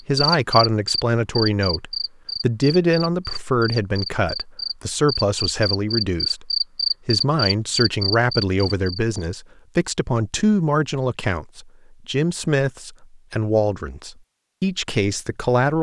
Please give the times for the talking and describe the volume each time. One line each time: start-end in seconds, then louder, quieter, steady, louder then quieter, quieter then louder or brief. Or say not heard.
0.1-15.7 steady.